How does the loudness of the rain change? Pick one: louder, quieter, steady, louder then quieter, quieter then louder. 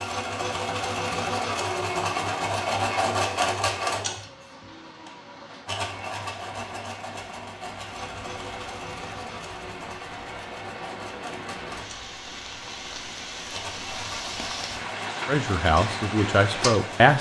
louder.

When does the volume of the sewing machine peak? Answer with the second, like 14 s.
3 s.